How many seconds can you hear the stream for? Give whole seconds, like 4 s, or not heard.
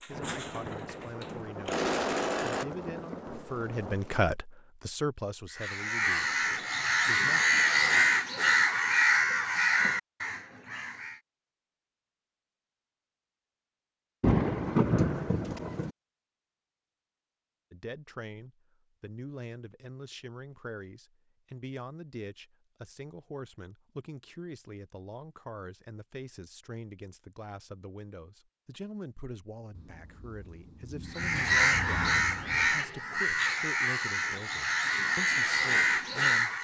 not heard.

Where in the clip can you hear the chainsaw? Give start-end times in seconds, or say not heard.
0.0-2.6.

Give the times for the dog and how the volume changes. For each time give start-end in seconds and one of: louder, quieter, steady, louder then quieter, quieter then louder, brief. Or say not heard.
not heard.